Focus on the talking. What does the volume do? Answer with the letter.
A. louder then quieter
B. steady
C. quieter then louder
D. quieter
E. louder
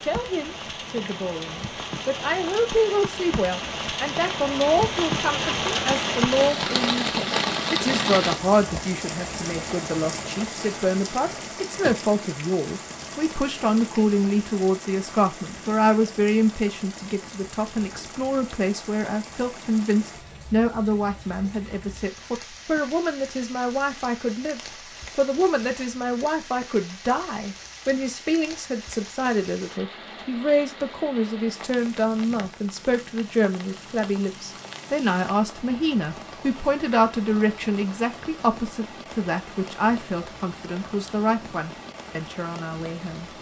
B.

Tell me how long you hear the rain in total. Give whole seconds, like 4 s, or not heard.
43 s.